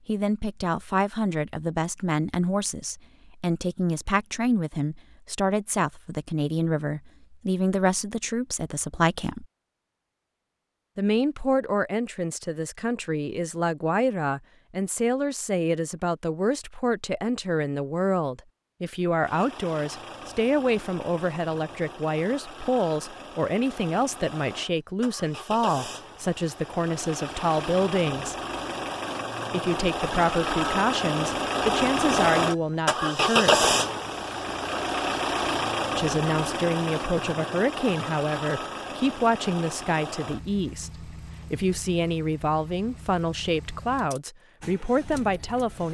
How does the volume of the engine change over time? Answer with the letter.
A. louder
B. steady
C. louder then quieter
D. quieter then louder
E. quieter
C.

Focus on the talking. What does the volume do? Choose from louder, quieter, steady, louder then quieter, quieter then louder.
steady.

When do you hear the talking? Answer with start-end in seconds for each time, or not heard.
0.1-9.4, 10.9-28.4, 29.5-33.7, 36.0-45.9.